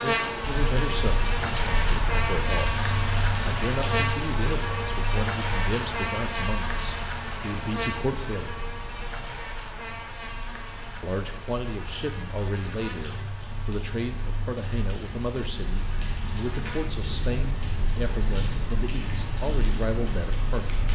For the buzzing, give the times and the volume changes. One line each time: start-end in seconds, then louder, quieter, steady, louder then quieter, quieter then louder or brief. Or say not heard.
0.0-16.9 quieter.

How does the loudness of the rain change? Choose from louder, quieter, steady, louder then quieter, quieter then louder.
quieter then louder.